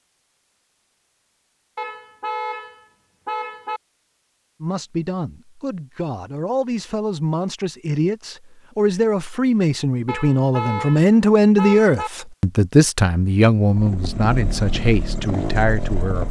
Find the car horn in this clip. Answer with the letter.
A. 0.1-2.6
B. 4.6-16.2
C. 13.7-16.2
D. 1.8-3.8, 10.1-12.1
D.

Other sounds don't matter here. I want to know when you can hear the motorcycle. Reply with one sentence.
You can hear the motorcycle from 13.7 to 16.2 s.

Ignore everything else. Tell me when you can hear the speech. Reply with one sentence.
The speech can be heard from 4.6 to 16.2 s.